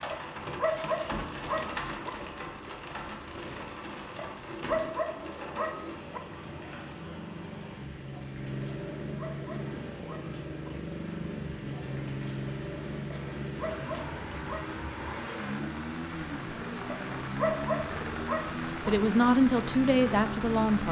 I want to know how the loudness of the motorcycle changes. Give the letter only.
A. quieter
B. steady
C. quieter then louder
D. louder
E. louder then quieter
D.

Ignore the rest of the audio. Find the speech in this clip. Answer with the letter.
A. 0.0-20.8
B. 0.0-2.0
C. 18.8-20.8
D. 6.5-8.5
C.